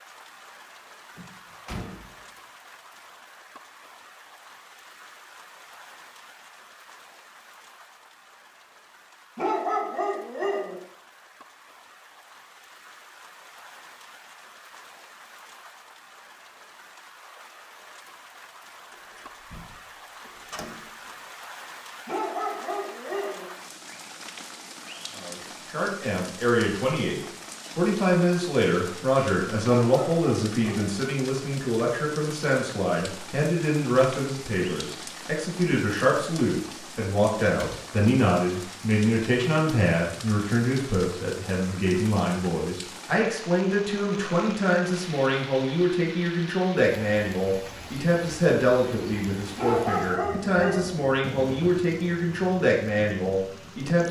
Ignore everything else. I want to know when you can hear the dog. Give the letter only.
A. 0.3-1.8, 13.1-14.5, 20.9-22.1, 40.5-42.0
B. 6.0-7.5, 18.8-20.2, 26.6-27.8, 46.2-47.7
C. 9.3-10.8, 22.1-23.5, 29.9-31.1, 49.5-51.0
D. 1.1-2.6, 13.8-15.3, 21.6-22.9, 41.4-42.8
C.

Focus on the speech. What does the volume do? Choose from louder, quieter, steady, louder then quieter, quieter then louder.
steady.